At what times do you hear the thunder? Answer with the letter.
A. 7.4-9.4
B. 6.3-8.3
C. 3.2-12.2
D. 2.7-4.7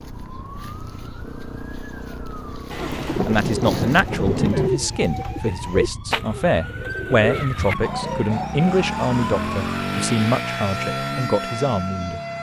D.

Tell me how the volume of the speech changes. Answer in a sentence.
The loudness of the speech stays about the same.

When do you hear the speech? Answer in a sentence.
You can hear the speech from 3.2 to 12.2 s.